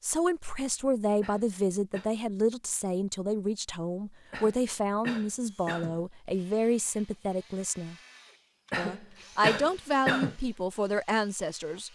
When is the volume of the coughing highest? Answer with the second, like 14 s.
10 s.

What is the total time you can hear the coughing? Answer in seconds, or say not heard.
4 s.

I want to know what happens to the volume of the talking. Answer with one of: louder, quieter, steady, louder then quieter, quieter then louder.
steady.